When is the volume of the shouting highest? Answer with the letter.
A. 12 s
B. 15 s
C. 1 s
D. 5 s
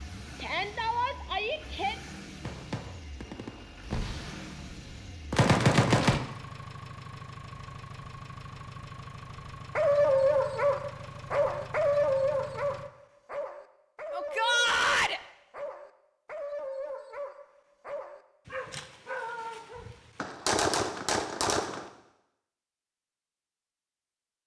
B.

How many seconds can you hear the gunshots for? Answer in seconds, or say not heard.
5 s.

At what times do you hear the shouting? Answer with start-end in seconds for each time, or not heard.
0.3-1.9, 14.1-15.2.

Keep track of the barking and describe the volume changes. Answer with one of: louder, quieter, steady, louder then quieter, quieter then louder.
quieter.